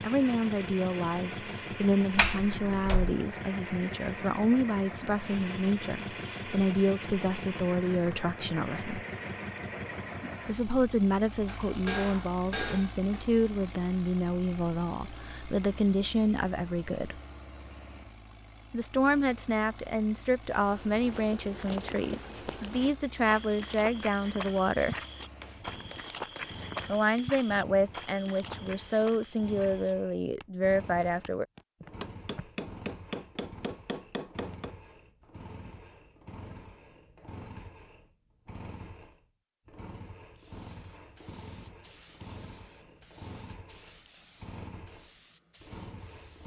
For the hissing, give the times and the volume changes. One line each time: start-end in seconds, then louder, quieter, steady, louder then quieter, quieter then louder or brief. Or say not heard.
40.4-46.4 steady.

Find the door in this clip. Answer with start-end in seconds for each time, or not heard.
2.1-3.1.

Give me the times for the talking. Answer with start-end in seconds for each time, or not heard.
0.0-9.0, 10.4-17.2, 18.7-24.9, 26.9-31.4.